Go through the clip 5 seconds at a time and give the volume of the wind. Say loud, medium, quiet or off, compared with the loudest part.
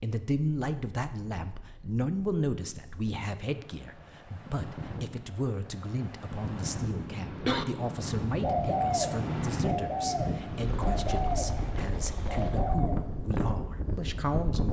medium, loud, loud.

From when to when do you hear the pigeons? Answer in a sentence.
You can hear the pigeons from 8.4 to 12.9 s.